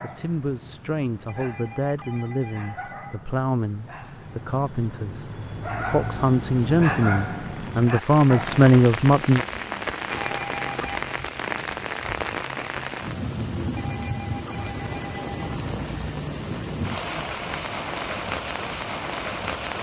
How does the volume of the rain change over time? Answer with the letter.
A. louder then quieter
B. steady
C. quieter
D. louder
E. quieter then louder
B.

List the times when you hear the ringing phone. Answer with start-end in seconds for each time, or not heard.
1.2-3.2, 10.1-11.1, 13.8-15.6.